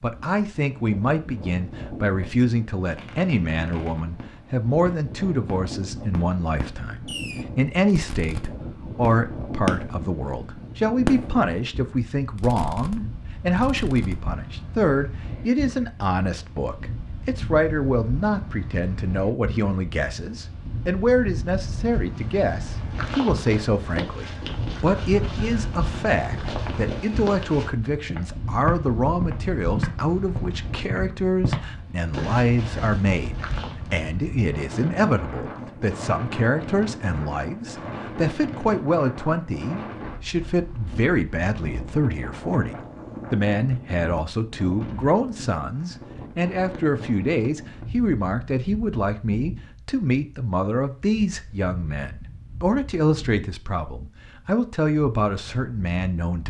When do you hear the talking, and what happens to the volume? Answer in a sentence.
The talking can be heard from 0.0 to 56.4 s, at a steady volume.